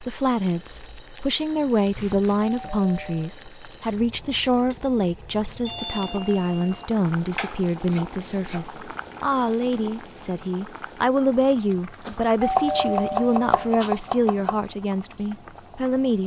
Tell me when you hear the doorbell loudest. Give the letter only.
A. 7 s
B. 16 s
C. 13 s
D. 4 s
C.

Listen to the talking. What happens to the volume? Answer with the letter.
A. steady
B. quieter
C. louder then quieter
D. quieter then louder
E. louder
A.